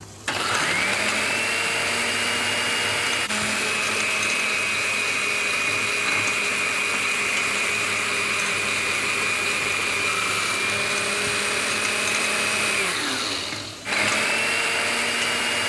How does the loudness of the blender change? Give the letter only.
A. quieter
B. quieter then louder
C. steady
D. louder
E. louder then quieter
C.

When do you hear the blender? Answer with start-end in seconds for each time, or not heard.
0.0-15.6.